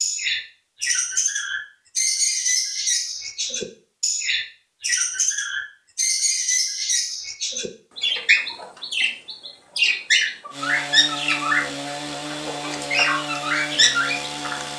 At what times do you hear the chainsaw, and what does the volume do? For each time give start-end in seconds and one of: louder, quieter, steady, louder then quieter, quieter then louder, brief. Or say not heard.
10.5-14.7 steady.